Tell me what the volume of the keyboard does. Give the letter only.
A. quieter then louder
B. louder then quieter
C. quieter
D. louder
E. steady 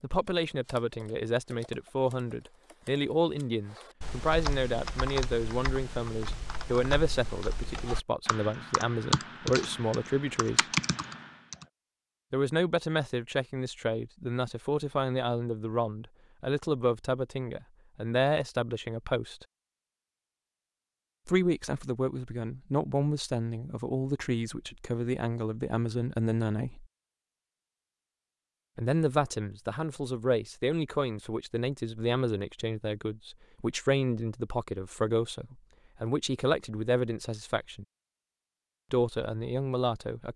D.